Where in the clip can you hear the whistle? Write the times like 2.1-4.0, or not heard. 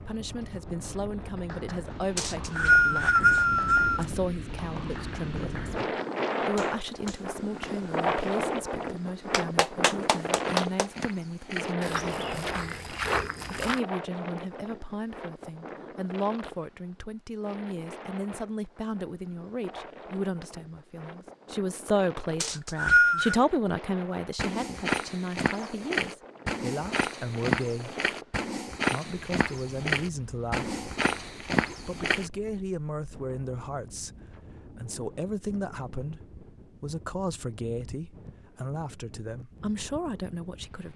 2.1-4.0, 22.4-23.4.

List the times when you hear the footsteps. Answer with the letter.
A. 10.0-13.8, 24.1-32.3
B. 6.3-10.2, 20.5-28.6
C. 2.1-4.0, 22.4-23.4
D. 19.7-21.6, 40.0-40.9
A.